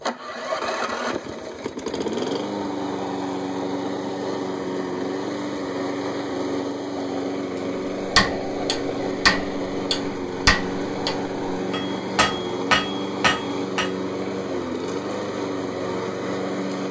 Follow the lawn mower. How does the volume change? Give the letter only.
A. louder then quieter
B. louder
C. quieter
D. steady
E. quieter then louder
D.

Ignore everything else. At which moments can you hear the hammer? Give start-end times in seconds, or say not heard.
8.0-13.9.